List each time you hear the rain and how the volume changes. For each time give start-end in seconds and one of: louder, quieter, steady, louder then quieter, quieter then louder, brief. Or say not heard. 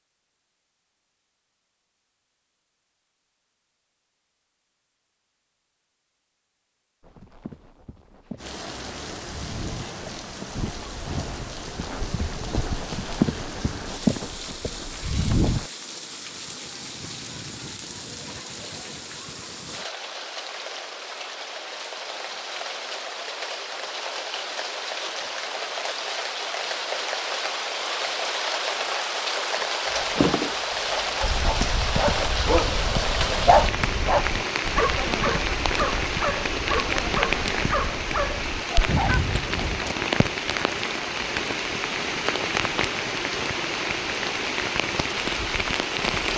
8.3-46.3 louder.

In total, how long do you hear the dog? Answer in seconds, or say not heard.
9 s.